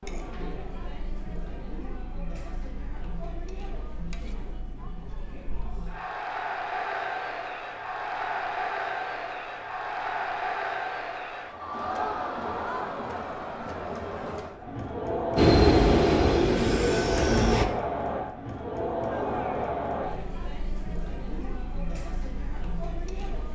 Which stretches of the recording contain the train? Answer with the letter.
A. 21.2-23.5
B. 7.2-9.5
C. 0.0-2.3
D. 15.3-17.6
D.